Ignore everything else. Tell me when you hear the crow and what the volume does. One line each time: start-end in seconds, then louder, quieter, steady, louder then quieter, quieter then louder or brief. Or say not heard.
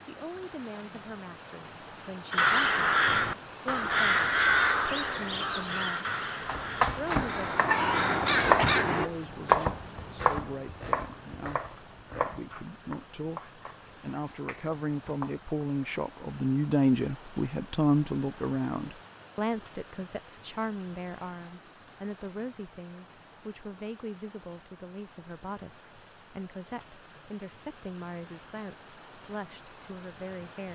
2.3-9.1 quieter then louder.